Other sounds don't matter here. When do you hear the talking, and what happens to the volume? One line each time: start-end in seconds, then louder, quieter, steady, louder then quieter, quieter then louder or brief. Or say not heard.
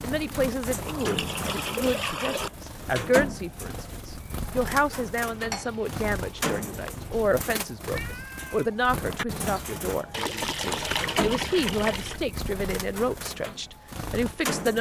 0.0-14.7 steady.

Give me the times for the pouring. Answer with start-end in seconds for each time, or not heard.
0.8-2.5, 5.2-7.2, 10.1-12.2.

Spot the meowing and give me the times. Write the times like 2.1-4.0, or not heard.
7.9-8.7.